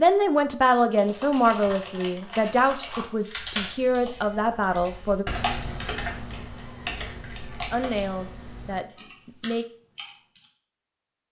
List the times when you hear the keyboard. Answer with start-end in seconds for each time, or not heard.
0.9-10.4.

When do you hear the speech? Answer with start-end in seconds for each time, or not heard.
0.0-5.2, 7.7-9.7.